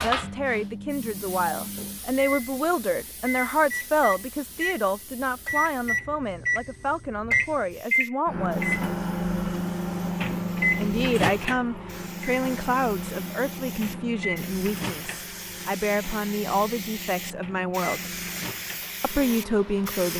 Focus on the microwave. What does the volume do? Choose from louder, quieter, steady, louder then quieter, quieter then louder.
louder then quieter.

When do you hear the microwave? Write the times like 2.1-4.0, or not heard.
0.1-20.1.